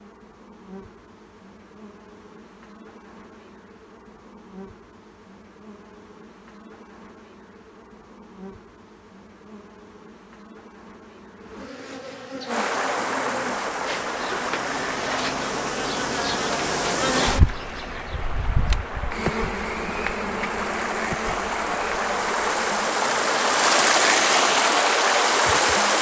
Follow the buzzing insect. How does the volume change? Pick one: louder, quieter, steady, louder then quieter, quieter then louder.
louder then quieter.